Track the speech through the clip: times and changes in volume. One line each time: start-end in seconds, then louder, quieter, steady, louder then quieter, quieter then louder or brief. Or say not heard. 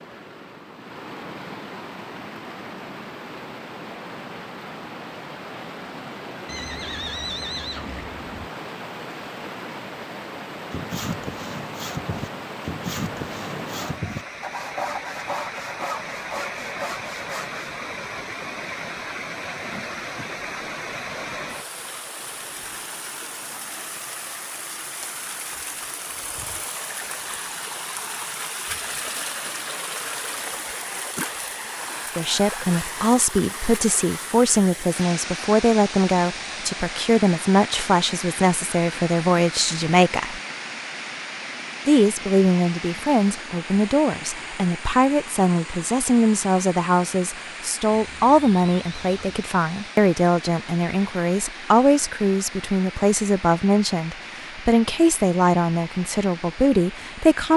32.1-40.4 steady
41.9-57.5 steady.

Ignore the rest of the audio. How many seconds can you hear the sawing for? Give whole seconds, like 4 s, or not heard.
7 s.